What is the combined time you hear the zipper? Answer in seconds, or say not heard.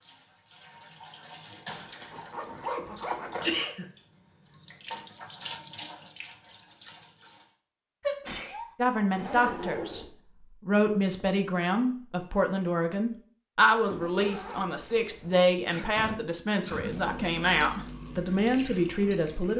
4 s.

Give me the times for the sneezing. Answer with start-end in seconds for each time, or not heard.
3.4-3.9, 8.0-8.7, 15.7-17.1.